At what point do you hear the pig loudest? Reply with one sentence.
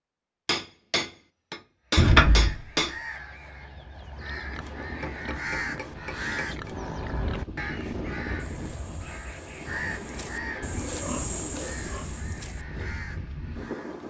The loudest moment of the pig is at 11 seconds.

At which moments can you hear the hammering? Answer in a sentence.
The hammering can be heard from 0.5 to 3.0 s and from 4.8 to 6.7 s.